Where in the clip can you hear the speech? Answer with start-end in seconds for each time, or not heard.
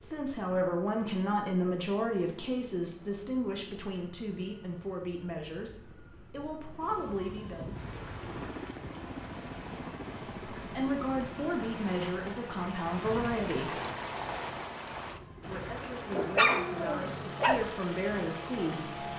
0.0-7.7, 10.6-13.8, 15.4-18.9.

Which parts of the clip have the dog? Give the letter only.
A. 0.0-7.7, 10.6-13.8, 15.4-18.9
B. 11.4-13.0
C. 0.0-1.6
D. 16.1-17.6
D.